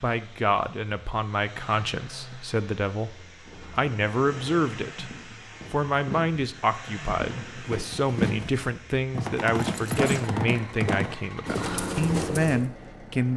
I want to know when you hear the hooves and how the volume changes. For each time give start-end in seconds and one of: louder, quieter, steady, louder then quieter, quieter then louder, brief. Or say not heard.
3.0-12.7 louder.